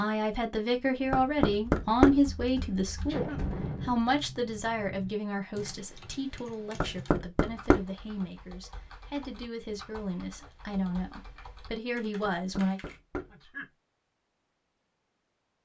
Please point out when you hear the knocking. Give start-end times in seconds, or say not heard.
1.1-2.2, 6.8-7.8, 12.2-13.3.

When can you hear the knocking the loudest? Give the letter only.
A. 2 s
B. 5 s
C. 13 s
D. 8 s
A.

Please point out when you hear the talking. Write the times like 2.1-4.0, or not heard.
0.0-12.8.